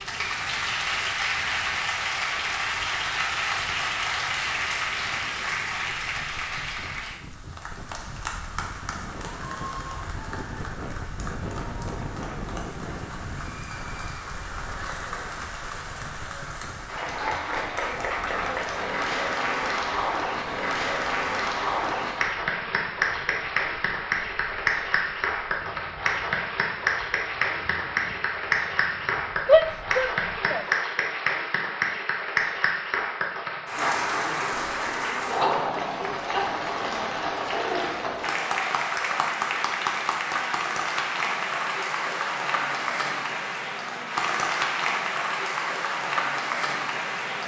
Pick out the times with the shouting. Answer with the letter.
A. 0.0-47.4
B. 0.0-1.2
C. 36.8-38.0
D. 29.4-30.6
D.